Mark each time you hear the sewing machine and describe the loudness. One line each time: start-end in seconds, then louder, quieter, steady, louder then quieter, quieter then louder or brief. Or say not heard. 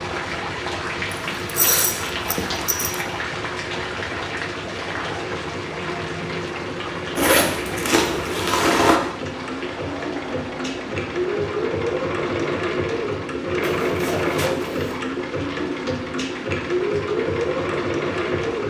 0.0-18.6 louder.